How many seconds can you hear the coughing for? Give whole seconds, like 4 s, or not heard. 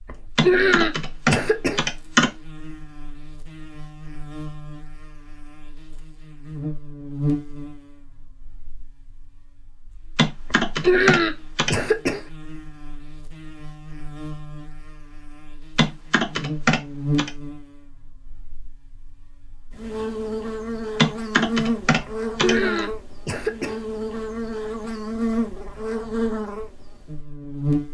5 s.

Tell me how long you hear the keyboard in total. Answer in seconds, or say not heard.
7 s.